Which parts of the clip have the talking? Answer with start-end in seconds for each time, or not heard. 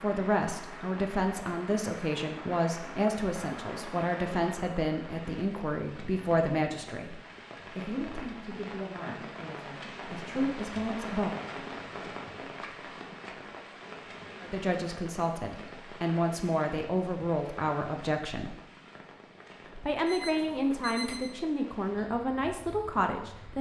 0.0-11.4, 14.4-18.6, 19.8-23.5.